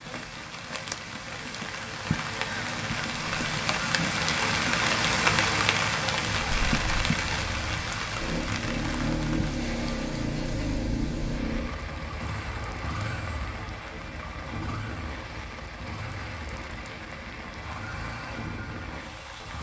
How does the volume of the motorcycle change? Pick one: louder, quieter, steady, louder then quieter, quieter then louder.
quieter.